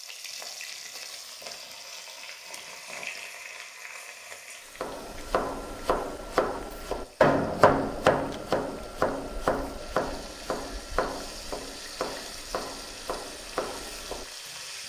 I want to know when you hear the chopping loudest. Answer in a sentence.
The volume of the chopping peaks at 7 seconds.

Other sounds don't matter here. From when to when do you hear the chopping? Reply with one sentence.
You can hear the chopping from 4.8 to 14.6 s.